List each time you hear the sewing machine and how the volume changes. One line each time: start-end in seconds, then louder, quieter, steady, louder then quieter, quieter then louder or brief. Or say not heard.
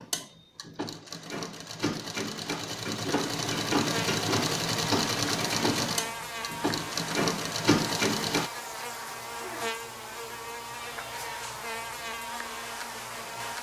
0.0-8.5 louder.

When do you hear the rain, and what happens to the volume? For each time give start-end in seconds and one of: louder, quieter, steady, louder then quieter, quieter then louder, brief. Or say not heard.
not heard.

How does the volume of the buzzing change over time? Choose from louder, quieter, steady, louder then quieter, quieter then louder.
steady.